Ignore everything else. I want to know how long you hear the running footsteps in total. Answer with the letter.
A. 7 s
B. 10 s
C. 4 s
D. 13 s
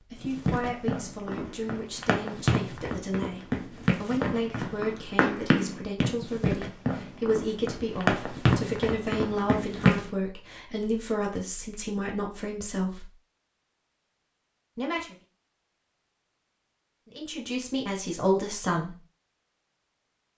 B.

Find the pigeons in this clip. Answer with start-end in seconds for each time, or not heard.
not heard.